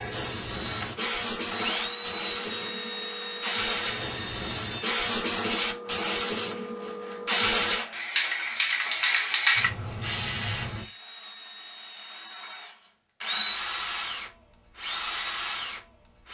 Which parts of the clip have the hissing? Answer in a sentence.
The hissing can be heard from 0.0 to 10.8 s.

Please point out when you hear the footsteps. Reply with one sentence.
You can't hear the footsteps here.